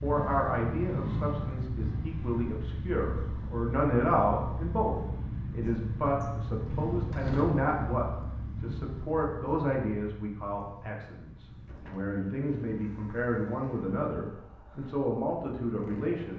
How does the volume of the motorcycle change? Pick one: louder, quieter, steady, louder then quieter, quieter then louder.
quieter.